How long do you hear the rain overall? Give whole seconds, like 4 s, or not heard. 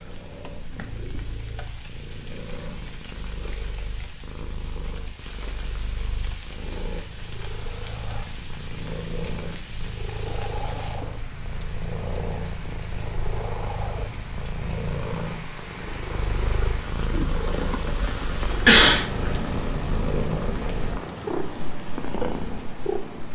23 s.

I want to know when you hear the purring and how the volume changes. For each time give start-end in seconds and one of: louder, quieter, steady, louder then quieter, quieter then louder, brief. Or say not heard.
0.0-23.3 louder.